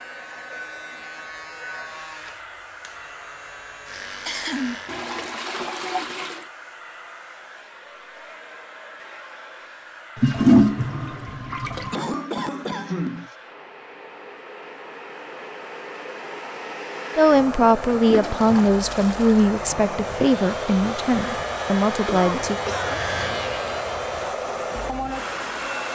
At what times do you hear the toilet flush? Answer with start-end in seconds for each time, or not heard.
4.8-6.5, 10.2-12.1, 18.0-19.4.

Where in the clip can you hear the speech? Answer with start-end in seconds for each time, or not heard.
17.1-22.6.